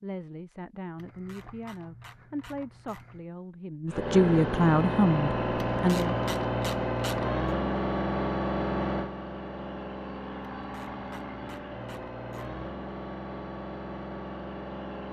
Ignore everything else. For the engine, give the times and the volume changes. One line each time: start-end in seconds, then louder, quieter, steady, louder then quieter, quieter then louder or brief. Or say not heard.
3.9-15.0 quieter.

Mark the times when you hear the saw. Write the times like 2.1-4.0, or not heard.
not heard.